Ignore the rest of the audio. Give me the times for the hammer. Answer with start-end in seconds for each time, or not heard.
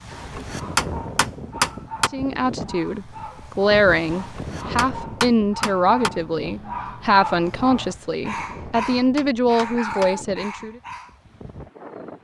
0.1-2.1, 4.2-6.1, 8.5-10.2.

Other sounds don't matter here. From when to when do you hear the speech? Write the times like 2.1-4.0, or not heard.
2.1-10.8.